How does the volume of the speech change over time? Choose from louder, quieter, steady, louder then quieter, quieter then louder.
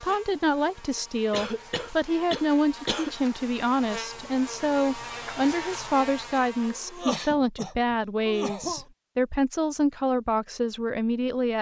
steady.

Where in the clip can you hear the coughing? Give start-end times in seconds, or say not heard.
1.3-3.1, 6.7-8.8.